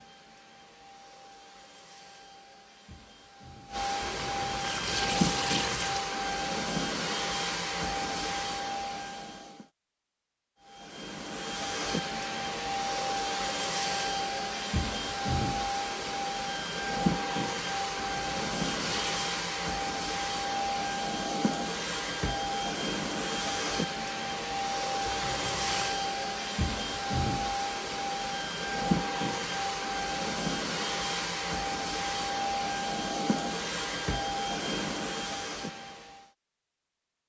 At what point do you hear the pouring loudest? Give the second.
5 s.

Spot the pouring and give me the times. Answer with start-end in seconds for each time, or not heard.
4.0-6.0, 17.9-19.1, 25.1-25.9.